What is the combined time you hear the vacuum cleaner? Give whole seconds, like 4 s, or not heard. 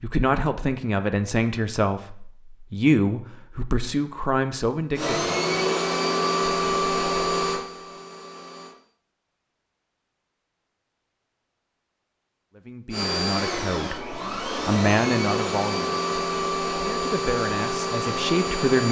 10 s.